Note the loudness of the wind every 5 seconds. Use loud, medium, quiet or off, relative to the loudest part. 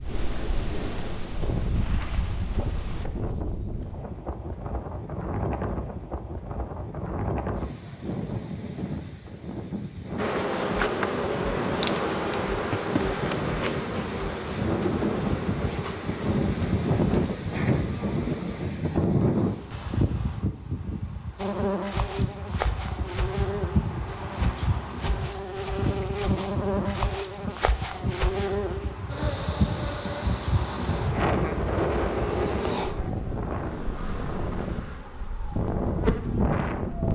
medium, medium, medium, loud, medium, medium, loud, loud.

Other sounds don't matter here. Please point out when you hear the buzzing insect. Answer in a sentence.
The buzzing insect can be heard from 0.0 to 3.0 s, from 10.2 to 18.7 s and from 21.4 to 37.1 s.